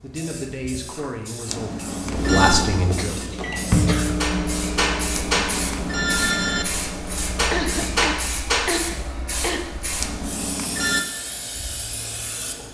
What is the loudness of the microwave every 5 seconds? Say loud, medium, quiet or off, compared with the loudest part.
loud, medium, off.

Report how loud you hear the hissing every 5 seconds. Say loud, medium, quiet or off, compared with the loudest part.
medium, loud, medium.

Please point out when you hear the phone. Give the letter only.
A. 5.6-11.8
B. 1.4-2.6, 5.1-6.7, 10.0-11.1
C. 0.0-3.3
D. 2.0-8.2
B.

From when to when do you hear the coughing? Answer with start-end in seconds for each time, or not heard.
3.0-4.1, 7.5-9.7.